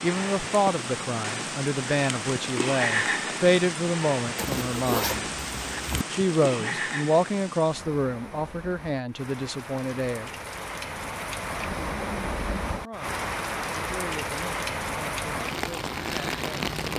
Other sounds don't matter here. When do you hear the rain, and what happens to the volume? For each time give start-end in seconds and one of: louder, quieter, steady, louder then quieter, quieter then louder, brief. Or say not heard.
0.0-16.9 quieter then louder.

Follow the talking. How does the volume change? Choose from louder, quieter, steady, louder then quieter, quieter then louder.
quieter.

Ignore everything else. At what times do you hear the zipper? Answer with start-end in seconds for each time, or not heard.
4.3-6.0.